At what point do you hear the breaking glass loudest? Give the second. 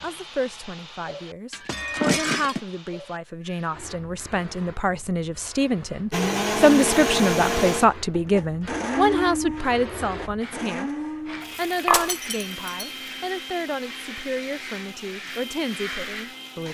2 s.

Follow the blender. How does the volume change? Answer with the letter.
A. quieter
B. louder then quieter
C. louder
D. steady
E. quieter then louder
A.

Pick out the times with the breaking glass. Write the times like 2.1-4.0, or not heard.
1.5-2.6, 11.8-12.7.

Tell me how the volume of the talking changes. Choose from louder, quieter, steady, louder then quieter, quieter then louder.
louder then quieter.